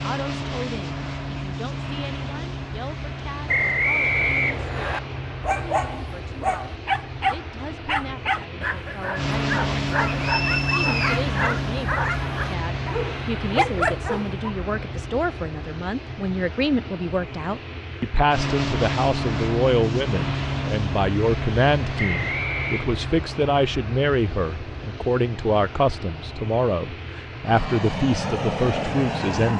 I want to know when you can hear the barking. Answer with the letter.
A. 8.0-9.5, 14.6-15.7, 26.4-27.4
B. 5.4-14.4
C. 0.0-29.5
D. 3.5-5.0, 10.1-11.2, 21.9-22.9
B.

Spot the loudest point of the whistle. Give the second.
4 s.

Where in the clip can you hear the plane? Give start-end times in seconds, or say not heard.
0.0-29.5.